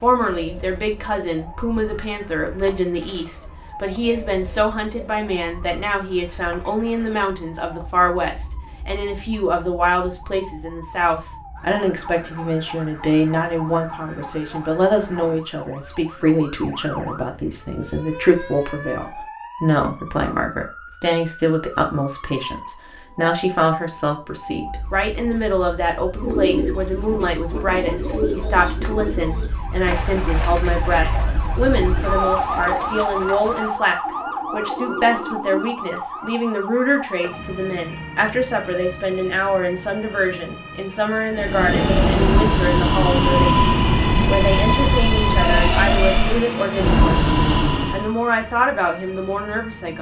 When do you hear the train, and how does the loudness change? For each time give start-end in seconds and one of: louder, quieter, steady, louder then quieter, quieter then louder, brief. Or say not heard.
41.3-48.1 steady.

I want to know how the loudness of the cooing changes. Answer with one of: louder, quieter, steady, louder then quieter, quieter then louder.
quieter.